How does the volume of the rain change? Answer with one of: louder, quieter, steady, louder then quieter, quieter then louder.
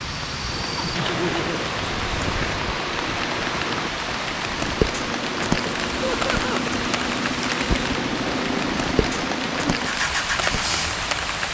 steady.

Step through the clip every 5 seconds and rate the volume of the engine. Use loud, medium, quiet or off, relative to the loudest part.
medium, loud, loud.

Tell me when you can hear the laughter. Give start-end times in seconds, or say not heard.
0.8-1.6, 6.0-6.7.